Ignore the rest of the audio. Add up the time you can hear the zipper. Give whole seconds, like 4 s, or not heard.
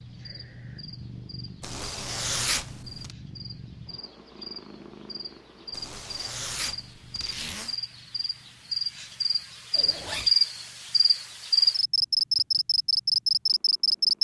4 s.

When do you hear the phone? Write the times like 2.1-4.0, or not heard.
not heard.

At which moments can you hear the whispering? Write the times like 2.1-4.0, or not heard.
not heard.